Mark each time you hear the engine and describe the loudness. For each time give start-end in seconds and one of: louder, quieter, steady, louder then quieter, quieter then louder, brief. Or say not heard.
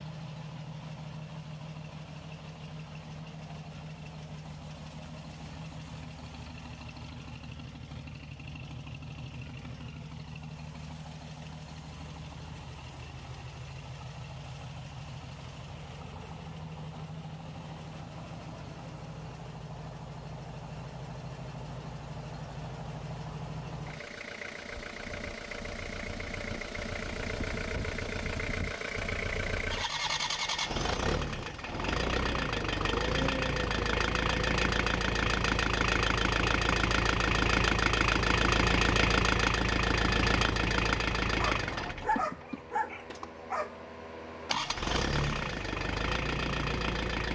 0.0-47.3 louder.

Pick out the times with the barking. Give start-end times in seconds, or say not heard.
41.4-43.8.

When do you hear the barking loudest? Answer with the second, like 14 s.
42 s.